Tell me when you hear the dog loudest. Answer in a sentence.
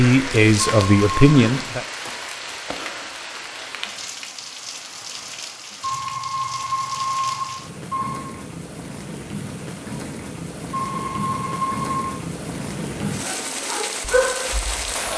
The volume of the dog peaks at 14 seconds.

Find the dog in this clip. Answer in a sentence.
You can hear the dog from 13.1 to 15.1 s.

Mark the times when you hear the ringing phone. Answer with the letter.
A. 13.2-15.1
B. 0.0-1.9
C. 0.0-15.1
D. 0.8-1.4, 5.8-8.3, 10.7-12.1
D.